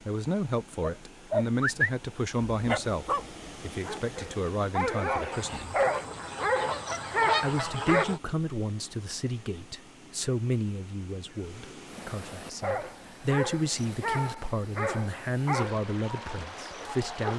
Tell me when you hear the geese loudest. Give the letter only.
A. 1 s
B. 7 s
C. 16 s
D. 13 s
B.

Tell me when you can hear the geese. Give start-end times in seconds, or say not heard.
5.3-8.2.